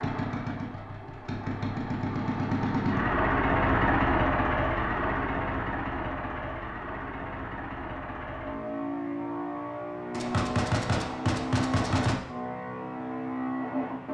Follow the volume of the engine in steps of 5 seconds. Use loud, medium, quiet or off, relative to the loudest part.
loud, medium, medium.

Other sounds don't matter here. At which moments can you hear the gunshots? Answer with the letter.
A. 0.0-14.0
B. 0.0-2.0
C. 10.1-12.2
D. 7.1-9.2
C.